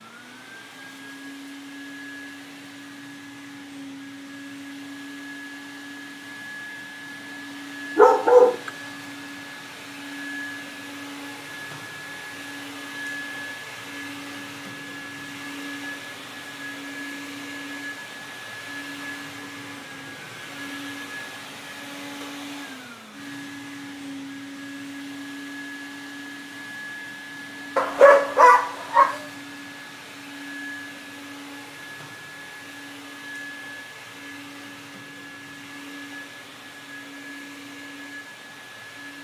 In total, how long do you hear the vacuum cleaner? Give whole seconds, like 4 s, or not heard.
39 s.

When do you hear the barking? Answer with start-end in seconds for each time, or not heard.
8.0-8.7, 27.8-29.2.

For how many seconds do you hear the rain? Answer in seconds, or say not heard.
not heard.